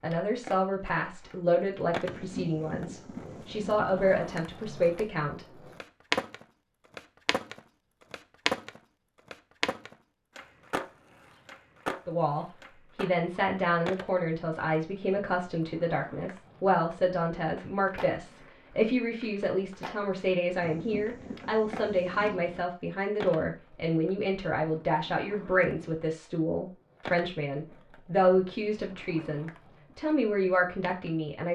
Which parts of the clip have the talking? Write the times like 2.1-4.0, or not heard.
0.0-5.5, 12.1-31.4.